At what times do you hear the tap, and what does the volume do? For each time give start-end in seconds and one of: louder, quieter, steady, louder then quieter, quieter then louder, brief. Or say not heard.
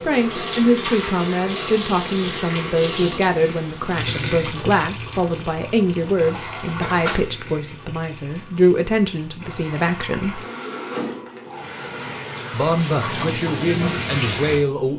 0.0-14.9 quieter then louder.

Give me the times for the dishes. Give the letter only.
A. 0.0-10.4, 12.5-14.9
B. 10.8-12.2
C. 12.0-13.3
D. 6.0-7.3
D.